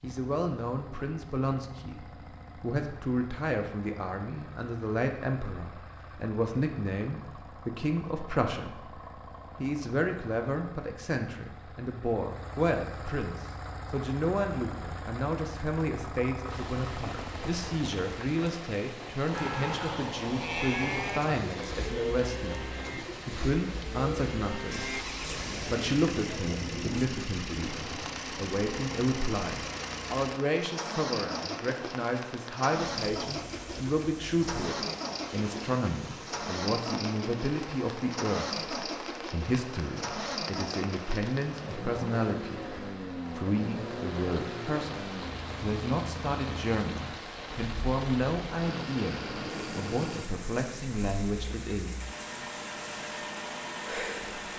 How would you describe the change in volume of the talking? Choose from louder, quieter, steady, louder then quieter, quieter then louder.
steady.